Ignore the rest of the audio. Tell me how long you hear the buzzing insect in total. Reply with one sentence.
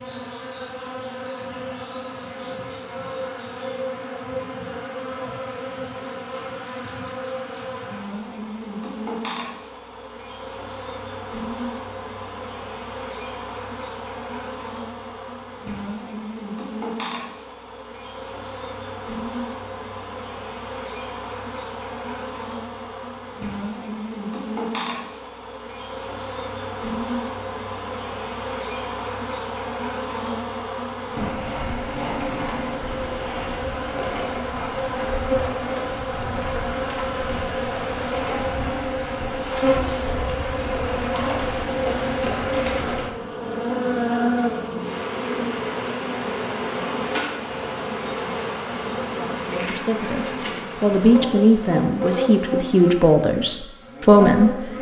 The buzzing insect can be heard for 55 seconds in total.